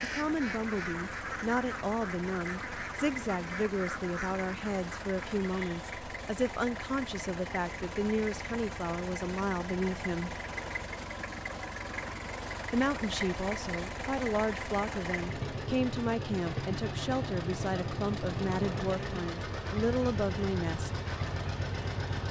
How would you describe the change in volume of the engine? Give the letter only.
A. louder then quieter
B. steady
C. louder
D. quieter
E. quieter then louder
C.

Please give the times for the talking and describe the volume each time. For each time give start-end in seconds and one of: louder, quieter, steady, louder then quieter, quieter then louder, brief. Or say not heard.
0.0-10.3 steady
12.7-21.0 steady.